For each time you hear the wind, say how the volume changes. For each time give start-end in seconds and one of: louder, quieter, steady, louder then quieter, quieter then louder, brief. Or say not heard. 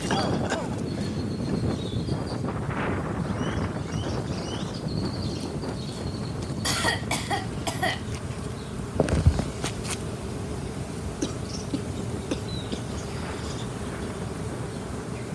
0.0-15.2 quieter.